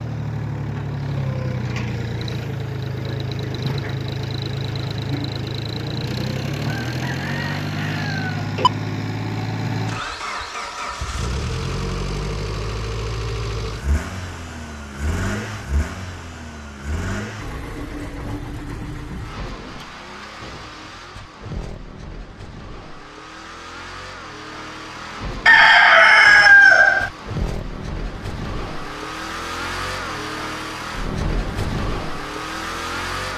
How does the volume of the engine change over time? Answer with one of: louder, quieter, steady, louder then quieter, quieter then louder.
quieter then louder.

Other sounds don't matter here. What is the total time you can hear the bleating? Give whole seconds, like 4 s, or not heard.
not heard.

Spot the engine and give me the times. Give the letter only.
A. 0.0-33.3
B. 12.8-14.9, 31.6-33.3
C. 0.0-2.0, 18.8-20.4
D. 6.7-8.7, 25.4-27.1
A.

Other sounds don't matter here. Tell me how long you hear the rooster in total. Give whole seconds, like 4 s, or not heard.
4 s.